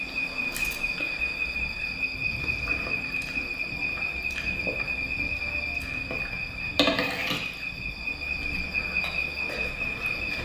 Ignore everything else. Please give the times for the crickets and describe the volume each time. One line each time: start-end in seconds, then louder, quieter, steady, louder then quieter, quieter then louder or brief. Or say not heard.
0.0-10.3 steady.